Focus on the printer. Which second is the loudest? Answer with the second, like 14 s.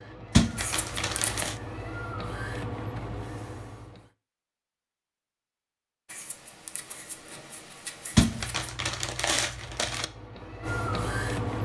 11 s.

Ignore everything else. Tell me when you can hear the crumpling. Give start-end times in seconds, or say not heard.
0.3-1.6, 8.2-10.1.